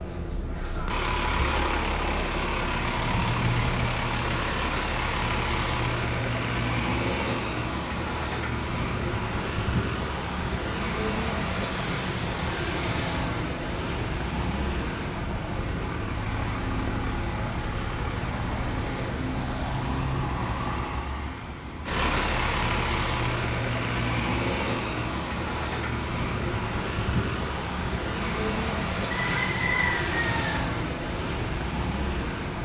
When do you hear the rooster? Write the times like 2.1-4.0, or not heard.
29.1-30.6.